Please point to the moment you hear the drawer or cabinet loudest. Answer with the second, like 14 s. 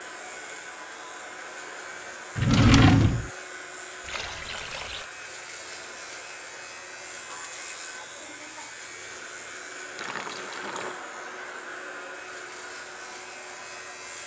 3 s.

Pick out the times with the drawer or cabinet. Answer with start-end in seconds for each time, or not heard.
2.4-3.3, 9.9-10.9.